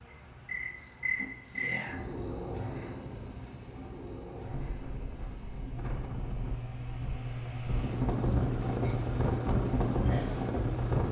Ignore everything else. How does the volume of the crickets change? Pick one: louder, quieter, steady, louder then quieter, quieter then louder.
quieter then louder.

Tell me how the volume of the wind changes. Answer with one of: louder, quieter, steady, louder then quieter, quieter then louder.
louder.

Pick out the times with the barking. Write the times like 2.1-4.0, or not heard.
not heard.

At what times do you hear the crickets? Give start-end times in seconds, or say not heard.
0.0-11.0.